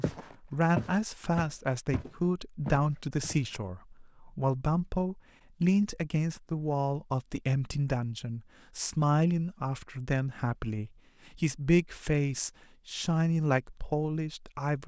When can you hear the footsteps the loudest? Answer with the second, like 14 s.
1 s.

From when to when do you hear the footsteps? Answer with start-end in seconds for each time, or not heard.
0.0-3.5.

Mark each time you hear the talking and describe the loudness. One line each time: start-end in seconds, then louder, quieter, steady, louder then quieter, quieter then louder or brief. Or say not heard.
0.0-14.8 steady.